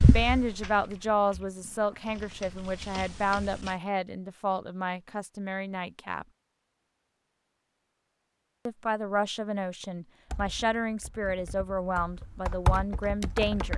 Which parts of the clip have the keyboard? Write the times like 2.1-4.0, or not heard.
0.0-3.7, 10.3-13.7.